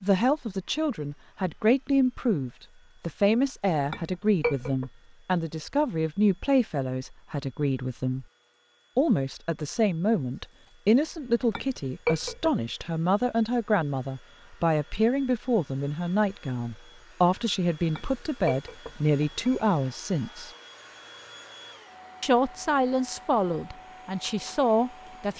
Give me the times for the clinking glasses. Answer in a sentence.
The clinking glasses can be heard from 3.9 to 4.8 s, from 11.5 to 12.5 s and from 17.9 to 19.7 s.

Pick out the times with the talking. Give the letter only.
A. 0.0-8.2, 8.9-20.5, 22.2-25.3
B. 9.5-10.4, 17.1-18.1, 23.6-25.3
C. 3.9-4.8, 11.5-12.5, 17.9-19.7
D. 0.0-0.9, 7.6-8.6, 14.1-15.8
A.